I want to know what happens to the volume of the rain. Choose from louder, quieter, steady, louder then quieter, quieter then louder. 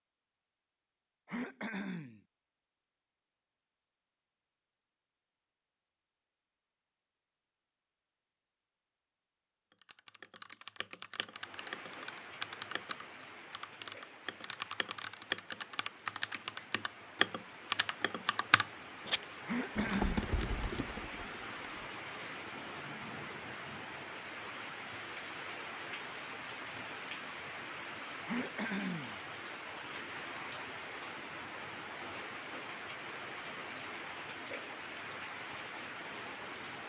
louder.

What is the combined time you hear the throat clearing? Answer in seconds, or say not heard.
3 s.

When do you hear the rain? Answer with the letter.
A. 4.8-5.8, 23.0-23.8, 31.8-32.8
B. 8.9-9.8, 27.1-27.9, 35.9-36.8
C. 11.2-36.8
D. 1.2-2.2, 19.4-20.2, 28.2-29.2
C.